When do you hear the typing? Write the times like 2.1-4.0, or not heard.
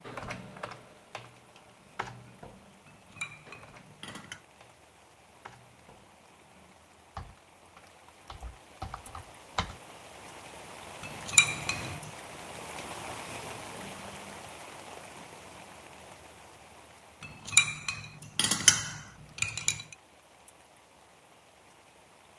0.0-9.8.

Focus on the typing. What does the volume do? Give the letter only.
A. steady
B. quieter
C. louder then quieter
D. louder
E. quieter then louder
E.